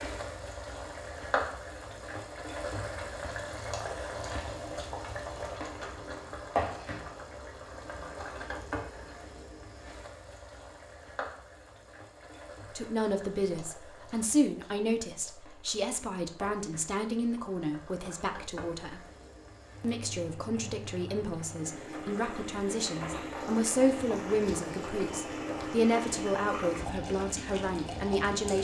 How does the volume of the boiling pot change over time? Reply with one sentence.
The loudness of the boiling pot goes down, then up.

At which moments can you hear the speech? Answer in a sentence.
The speech can be heard from 12.8 to 19.1 s and from 19.8 to 28.5 s.